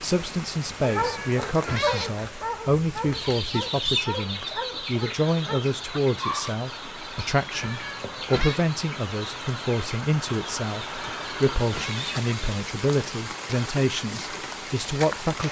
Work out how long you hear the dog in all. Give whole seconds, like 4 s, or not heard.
6 s.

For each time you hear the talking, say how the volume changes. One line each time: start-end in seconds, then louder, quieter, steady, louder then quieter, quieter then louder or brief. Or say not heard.
0.0-15.4 steady.